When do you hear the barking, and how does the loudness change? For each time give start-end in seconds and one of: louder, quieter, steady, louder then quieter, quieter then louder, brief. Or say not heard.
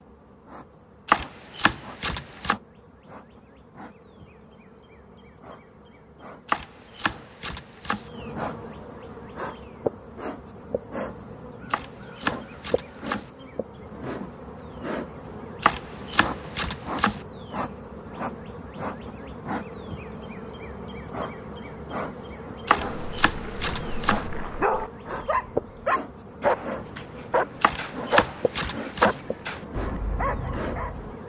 22.6-31.1 louder then quieter.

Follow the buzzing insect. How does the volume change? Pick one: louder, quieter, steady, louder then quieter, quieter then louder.
louder.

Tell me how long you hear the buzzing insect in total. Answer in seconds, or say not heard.
31 s.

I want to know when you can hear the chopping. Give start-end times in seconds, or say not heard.
1.1-2.5, 6.5-8.1, 11.7-13.3, 15.6-17.2, 22.6-24.2, 27.6-29.2.